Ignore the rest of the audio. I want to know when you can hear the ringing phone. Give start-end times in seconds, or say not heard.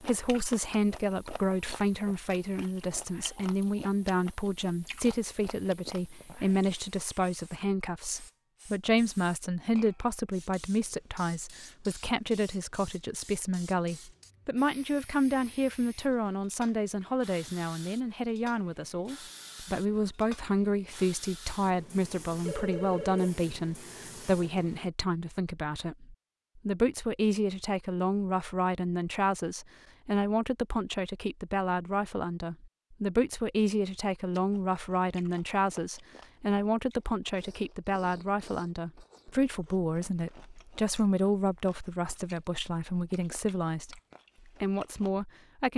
22.4-23.4.